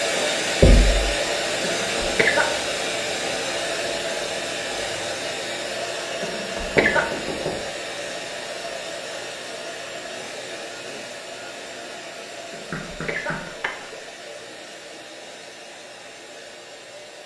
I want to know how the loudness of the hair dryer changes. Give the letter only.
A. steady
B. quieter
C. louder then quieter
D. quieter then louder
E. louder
B.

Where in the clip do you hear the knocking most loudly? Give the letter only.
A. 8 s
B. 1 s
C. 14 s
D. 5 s
B.